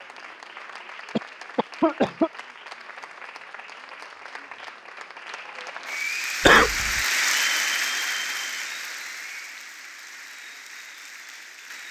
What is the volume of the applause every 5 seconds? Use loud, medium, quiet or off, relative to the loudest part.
quiet, loud, quiet.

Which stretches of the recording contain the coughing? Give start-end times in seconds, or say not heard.
1.1-2.3, 6.5-7.0.